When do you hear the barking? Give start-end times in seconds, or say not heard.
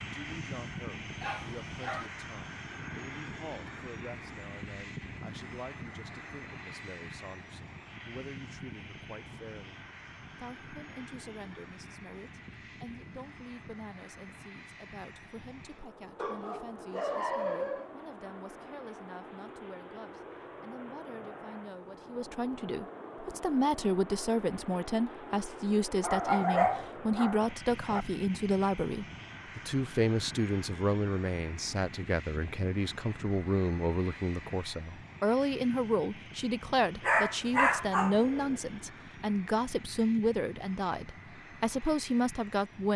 1.2-2.1, 16.1-17.9, 26.0-28.1, 37.0-38.5.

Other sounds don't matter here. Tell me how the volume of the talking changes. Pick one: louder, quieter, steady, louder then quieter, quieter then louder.
louder.